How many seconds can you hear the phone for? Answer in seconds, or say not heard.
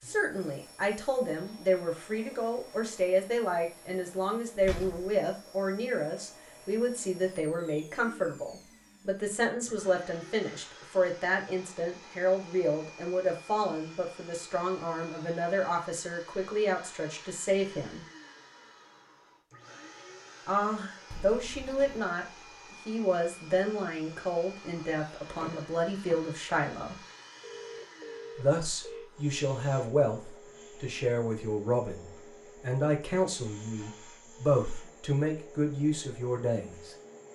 2 s.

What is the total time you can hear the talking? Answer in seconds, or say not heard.
33 s.